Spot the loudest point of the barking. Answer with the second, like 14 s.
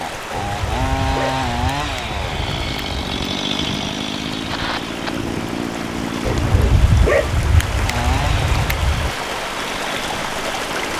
7 s.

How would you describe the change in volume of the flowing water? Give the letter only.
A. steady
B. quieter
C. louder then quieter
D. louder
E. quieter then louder
D.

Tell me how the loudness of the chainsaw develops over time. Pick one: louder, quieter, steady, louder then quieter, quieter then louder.
quieter.